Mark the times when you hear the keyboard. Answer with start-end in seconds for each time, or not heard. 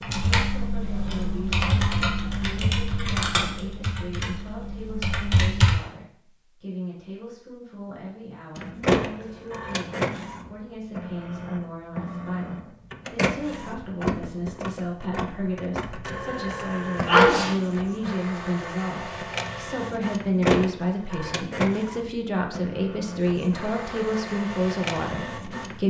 0.0-5.8.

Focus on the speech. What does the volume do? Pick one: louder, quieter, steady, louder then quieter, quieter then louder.
louder.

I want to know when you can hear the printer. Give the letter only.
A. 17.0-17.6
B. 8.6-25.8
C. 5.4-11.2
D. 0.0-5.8
B.